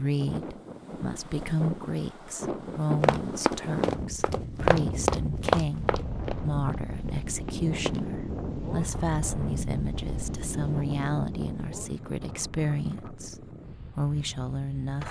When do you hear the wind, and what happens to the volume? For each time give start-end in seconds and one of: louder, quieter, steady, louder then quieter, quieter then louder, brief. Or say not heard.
0.0-15.0 quieter.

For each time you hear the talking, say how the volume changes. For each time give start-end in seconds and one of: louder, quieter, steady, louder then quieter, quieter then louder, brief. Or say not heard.
0.0-15.0 steady.